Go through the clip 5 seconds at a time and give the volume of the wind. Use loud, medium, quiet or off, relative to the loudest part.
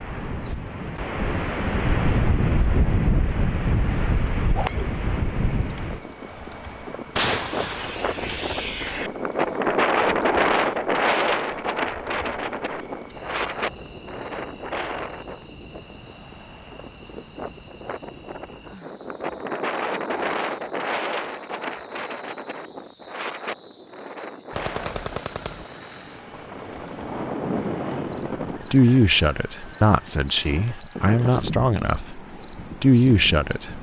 loud, loud, loud, medium, medium, medium, medium.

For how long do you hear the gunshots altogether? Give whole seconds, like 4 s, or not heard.
3 s.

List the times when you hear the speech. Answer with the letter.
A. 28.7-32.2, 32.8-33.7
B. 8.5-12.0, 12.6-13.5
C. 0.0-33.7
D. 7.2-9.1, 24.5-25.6
A.